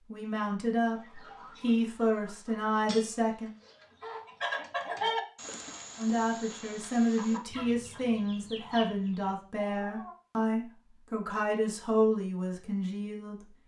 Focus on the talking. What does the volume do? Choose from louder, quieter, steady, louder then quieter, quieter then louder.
steady.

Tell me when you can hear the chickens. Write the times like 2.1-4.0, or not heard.
0.9-10.2.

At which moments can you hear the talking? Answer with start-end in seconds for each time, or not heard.
0.1-3.5, 6.0-13.5.